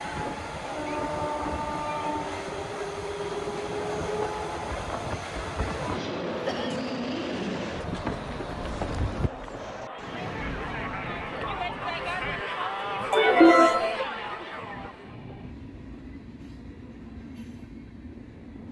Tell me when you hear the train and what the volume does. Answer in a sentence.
You can hear the train from 0.0 to 18.6 s, getting quieter.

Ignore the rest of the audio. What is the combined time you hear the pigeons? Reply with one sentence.
You can't hear the pigeons here.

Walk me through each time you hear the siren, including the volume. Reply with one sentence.
The siren can't be heard in this clip.